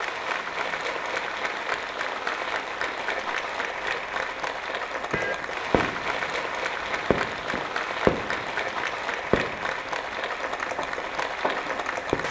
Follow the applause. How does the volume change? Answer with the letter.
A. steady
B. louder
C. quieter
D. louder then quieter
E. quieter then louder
A.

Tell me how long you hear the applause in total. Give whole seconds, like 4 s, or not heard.
12 s.